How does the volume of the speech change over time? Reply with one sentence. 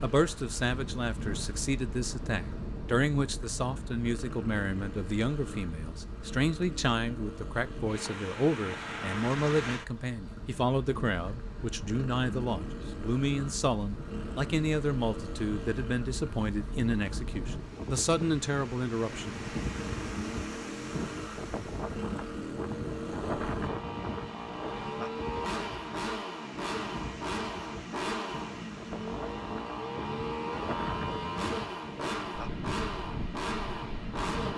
The loudness of the speech stays about the same.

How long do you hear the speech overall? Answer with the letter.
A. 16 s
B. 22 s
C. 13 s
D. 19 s
D.